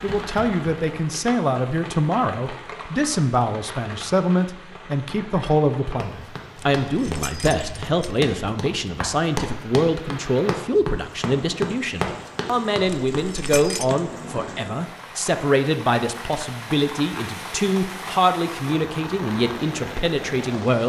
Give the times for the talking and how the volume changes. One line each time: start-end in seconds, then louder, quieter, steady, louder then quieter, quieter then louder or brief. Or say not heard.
0.0-20.8 steady.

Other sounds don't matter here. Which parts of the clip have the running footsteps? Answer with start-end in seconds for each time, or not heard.
5.8-13.9.